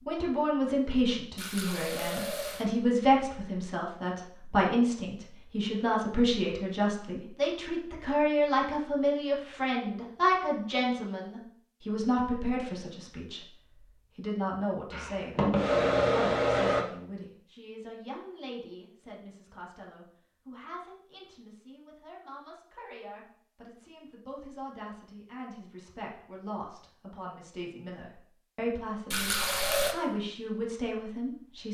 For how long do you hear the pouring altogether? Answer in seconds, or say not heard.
2 s.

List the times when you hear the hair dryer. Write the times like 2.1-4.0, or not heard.
14.9-16.9.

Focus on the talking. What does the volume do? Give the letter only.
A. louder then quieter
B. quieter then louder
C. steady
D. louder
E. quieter
B.